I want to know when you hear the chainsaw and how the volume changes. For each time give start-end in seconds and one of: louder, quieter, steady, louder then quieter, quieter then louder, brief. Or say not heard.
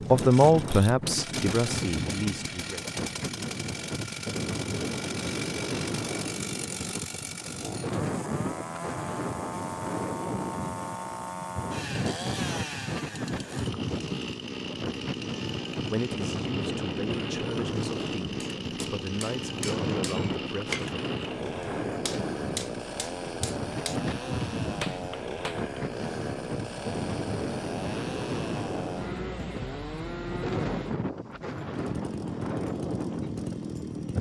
0.0-34.1 steady.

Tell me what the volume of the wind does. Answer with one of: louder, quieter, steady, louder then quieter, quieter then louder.
steady.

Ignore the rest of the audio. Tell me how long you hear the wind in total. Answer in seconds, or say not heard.
34 s.